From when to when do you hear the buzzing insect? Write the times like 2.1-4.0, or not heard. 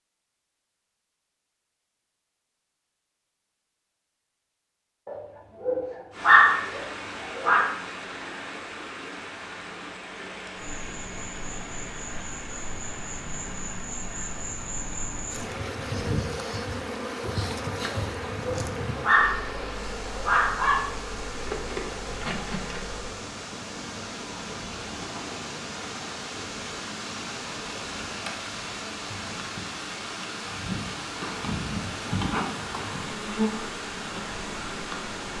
10.6-35.3.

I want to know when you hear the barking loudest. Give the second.
6 s.